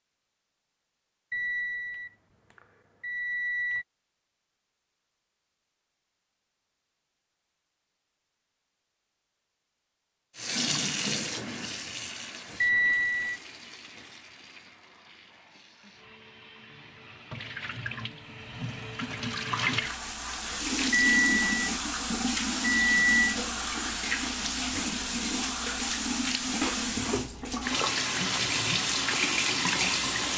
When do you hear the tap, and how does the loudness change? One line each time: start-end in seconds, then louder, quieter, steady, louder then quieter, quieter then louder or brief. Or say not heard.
10.3-30.3 quieter then louder.